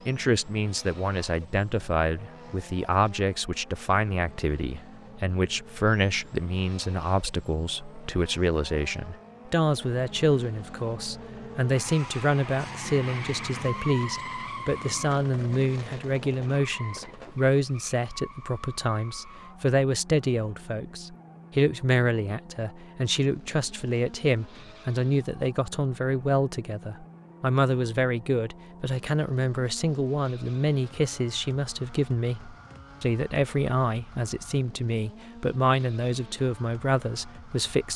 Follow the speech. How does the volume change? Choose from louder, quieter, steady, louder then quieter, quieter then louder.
steady.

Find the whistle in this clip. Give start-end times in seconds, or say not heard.
not heard.